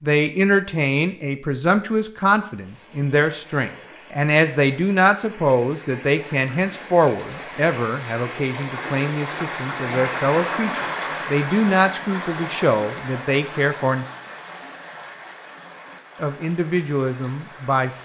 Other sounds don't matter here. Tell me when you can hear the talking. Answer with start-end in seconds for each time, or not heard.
0.0-14.1, 16.2-17.9.